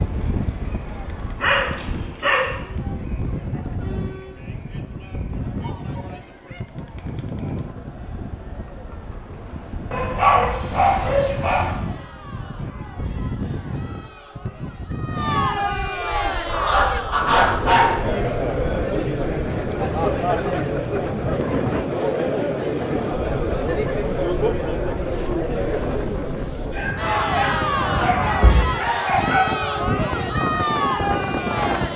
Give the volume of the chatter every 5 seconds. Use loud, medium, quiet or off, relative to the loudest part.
quiet, quiet, quiet, loud, loud, loud, loud.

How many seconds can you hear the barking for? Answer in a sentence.
You can hear the barking for 7 seconds altogether.